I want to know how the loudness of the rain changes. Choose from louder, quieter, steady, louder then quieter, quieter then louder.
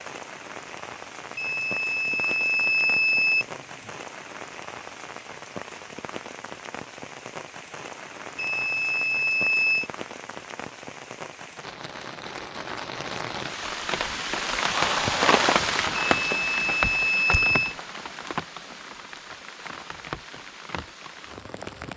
louder then quieter.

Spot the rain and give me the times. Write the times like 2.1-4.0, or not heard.
0.0-21.9.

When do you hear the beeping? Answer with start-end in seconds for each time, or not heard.
1.4-3.9, 8.3-9.9, 15.9-17.8.